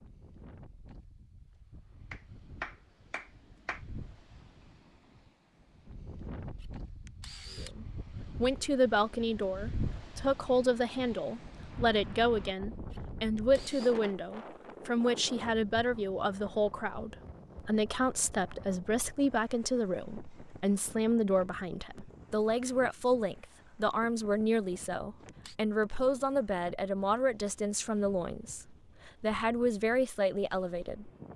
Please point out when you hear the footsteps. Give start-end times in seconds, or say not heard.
not heard.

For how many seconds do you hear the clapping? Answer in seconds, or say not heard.
2 s.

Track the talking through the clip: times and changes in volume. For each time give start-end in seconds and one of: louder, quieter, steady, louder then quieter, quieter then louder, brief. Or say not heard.
7.6-31.1 steady.